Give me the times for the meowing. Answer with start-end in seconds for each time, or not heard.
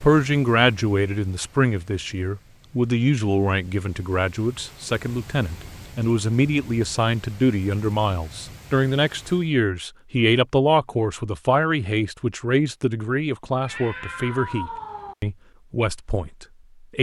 13.6-15.2.